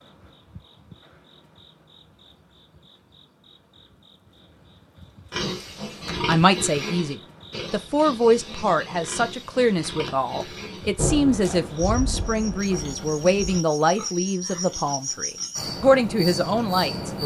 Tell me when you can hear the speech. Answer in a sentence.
You can hear the speech from 6.2 to 17.2 s.